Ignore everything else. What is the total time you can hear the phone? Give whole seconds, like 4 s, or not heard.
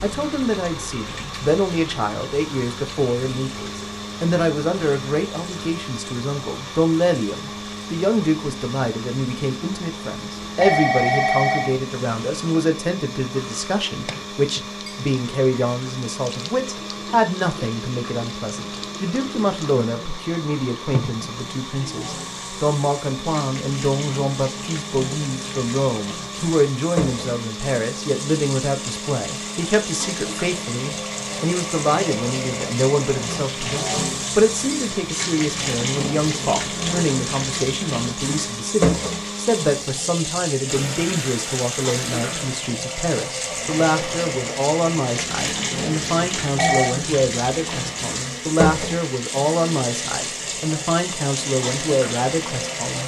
2 s.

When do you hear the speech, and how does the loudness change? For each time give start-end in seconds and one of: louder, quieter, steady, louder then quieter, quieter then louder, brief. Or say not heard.
0.0-53.0 steady.